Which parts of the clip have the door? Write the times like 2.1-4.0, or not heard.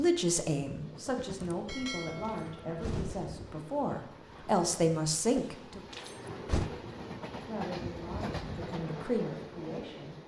2.2-3.3, 5.9-6.7.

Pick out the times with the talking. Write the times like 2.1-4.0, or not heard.
0.0-5.8, 7.5-10.2.